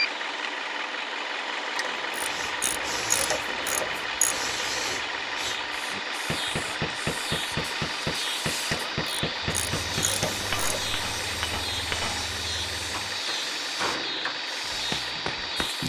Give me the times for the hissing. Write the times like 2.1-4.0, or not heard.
2.1-15.8.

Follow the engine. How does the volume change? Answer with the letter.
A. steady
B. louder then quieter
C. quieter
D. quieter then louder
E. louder
A.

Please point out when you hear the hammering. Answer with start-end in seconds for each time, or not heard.
5.9-15.7.